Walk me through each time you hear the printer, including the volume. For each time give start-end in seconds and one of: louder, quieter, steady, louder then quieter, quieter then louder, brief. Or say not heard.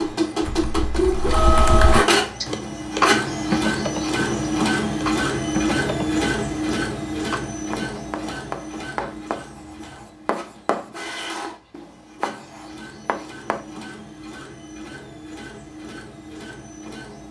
0.0-17.2 quieter.